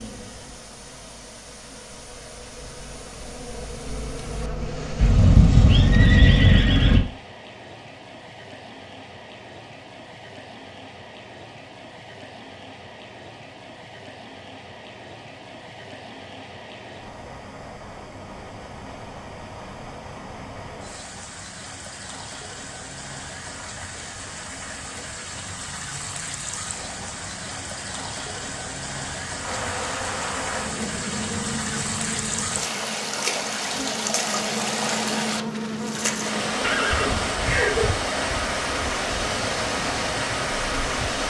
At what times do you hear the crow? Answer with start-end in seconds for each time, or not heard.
not heard.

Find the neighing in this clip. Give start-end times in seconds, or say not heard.
5.0-7.0, 36.6-37.9.